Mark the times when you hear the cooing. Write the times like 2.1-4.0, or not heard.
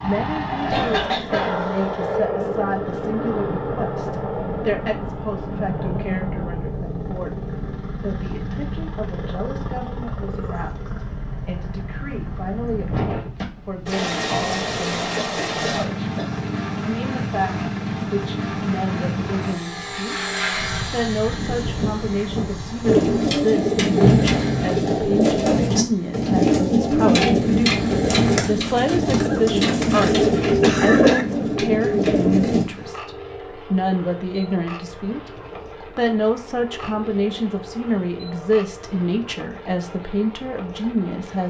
22.8-32.6.